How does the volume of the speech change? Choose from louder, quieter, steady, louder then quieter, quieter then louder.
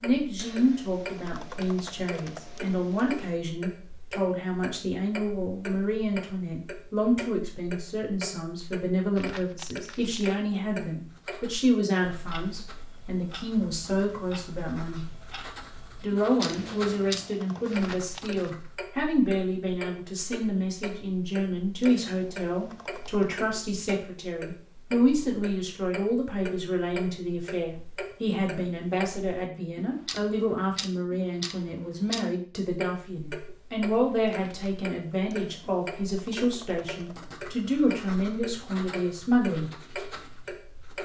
steady.